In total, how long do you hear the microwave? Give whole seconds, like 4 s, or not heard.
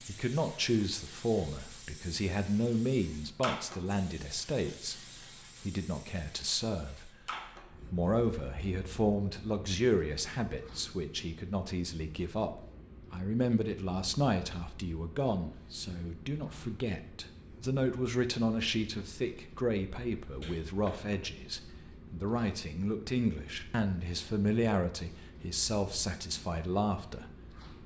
not heard.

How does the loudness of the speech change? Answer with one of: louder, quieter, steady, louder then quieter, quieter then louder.
steady.